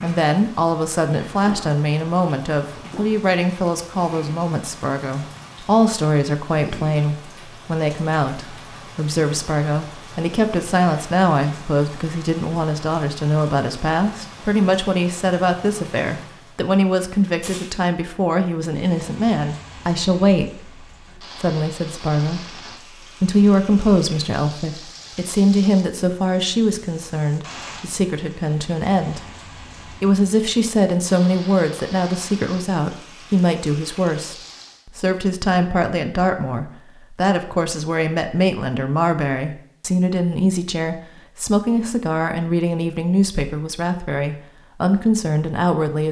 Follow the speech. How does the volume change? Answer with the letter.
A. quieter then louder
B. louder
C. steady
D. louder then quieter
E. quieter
C.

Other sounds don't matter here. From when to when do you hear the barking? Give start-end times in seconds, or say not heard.
not heard.